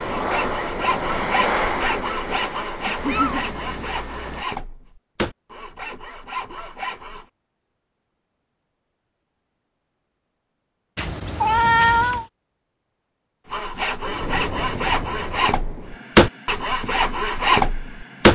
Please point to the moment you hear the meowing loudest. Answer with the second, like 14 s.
12 s.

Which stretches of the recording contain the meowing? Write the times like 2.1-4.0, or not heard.
3.0-4.5, 10.9-12.2.